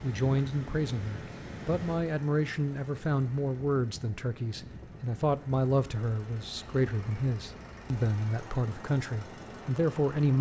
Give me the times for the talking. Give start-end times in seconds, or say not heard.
0.0-10.3.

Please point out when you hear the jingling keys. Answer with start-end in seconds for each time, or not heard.
not heard.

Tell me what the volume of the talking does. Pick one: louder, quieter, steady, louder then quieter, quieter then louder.
steady.